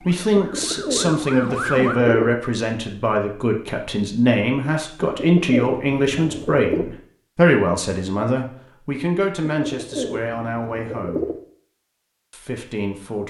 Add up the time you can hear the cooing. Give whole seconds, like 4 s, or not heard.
6 s.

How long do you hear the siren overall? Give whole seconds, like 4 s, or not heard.
2 s.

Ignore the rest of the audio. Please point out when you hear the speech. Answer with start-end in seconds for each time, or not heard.
0.0-11.3, 12.3-13.2.